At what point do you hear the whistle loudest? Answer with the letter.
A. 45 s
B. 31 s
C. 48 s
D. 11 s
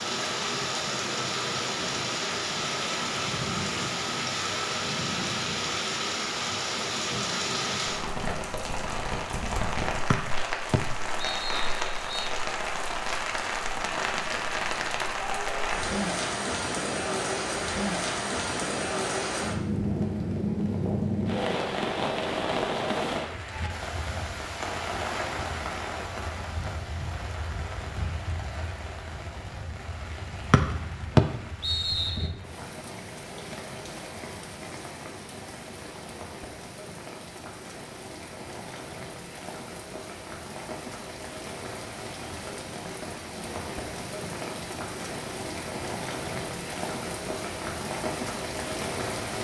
B.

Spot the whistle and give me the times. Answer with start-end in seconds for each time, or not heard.
10.1-12.3, 30.5-32.2.